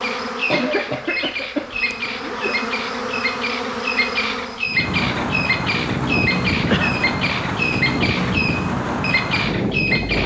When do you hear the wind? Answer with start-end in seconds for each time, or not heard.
4.7-10.2.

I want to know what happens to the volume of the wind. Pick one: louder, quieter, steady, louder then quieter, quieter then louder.
steady.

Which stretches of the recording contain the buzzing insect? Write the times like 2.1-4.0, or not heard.
0.0-4.8.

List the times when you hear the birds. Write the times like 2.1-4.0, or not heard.
0.0-10.2.